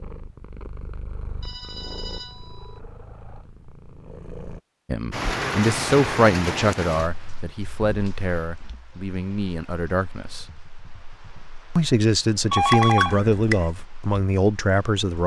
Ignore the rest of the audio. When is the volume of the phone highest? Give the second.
13 s.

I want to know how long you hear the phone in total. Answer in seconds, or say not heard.
4 s.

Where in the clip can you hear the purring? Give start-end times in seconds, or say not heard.
0.0-4.6.